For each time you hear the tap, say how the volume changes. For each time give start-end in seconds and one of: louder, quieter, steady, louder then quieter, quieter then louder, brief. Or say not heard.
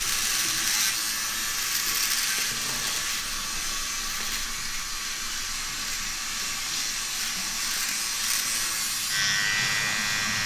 0.0-10.4 steady.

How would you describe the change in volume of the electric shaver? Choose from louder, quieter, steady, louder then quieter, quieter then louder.
quieter then louder.